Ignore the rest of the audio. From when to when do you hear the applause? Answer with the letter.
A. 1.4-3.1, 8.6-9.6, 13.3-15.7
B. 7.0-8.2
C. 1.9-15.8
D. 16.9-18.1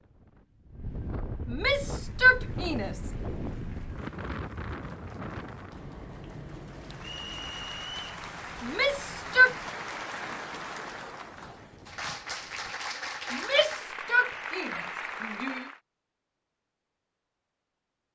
C.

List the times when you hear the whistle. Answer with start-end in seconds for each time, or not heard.
7.0-8.2.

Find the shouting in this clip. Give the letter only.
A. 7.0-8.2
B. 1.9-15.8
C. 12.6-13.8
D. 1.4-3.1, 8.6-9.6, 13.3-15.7
D.